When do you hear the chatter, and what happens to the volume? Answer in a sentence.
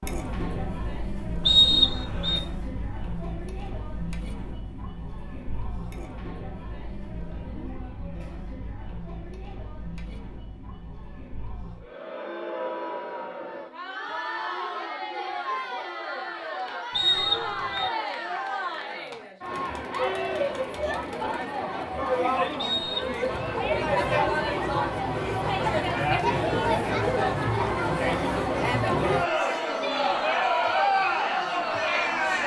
The chatter can be heard from 0.0 to 32.4 s, getting louder.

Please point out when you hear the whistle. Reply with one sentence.
You can hear the whistle from 1.4 to 2.4 s, from 16.9 to 17.9 s and from 22.6 to 23.2 s.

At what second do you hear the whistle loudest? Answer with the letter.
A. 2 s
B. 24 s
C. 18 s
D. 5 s
A.